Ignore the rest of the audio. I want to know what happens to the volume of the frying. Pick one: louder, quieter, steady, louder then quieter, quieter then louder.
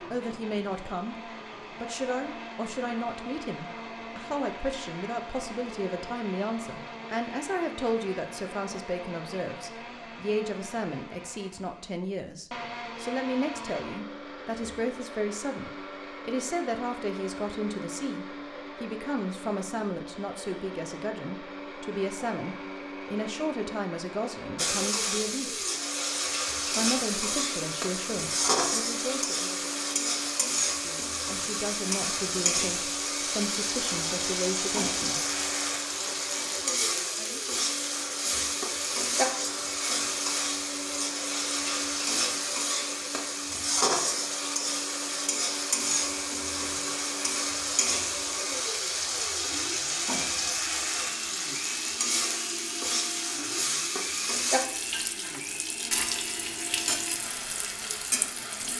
steady.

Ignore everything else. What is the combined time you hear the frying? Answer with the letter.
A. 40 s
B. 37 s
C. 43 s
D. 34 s
D.